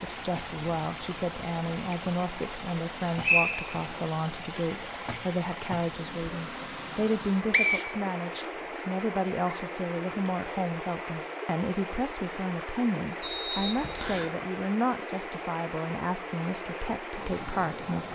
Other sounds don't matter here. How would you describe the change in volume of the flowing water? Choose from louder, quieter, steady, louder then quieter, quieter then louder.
steady.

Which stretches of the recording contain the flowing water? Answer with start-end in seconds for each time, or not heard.
0.0-18.1.